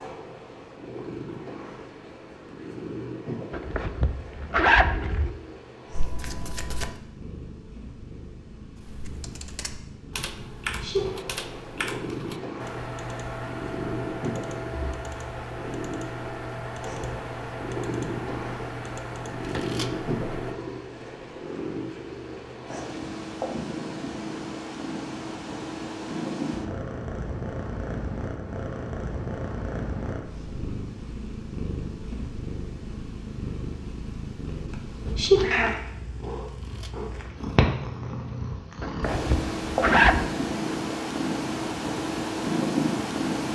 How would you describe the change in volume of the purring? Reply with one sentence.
The volume of the purring goes up.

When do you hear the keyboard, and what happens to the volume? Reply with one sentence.
You can hear the keyboard from 8.8 to 20.6 s, at a steady volume.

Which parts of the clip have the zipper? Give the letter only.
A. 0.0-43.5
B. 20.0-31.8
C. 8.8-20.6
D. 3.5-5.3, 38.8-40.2
D.